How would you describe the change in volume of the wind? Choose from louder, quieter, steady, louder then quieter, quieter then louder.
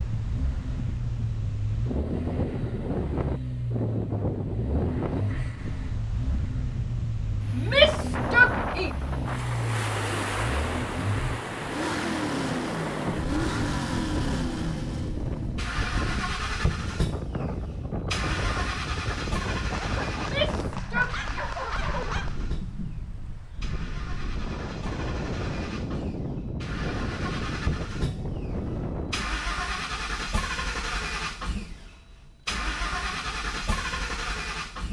steady.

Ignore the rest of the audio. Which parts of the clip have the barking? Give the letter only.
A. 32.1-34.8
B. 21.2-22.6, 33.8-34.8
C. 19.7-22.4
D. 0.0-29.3
C.